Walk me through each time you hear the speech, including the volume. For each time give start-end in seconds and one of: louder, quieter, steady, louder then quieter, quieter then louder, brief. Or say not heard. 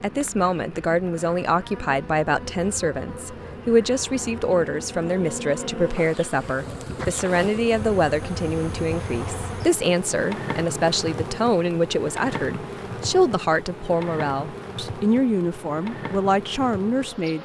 0.0-17.3 steady.